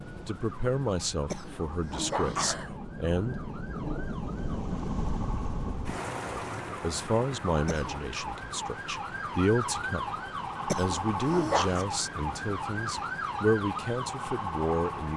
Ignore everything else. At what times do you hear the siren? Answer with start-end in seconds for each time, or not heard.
0.0-15.1.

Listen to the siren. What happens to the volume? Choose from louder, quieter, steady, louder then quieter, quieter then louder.
louder.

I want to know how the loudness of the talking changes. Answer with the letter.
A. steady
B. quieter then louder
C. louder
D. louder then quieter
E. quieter
A.